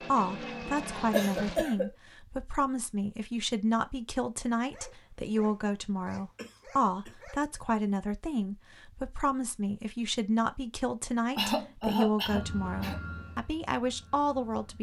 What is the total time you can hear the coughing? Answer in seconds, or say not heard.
3 s.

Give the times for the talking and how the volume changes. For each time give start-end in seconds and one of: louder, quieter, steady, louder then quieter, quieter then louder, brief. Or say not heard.
0.1-14.7 steady.